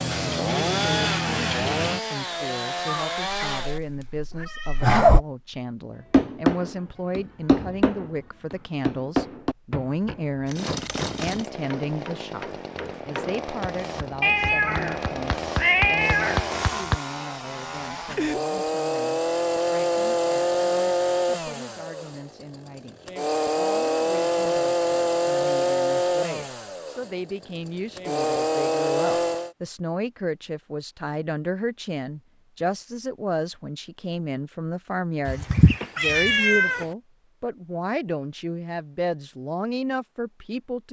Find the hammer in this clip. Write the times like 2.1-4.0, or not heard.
6.1-16.9.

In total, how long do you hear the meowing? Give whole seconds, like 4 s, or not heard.
6 s.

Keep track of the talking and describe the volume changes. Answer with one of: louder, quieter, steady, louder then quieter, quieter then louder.
quieter then louder.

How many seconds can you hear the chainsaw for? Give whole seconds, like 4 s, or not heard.
23 s.